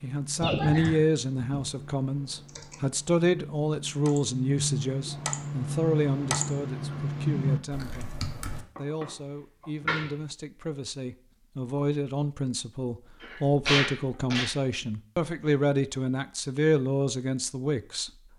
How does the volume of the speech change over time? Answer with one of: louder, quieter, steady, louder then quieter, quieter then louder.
quieter then louder.